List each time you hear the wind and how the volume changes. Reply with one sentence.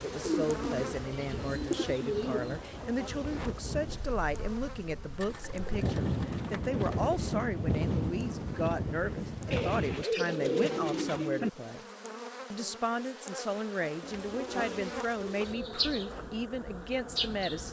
You can hear the wind from 0.0 to 10.1 s, getting louder.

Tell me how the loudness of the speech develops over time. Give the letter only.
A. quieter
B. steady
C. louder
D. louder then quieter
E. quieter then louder
B.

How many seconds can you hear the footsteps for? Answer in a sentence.
You can't hear the footsteps here.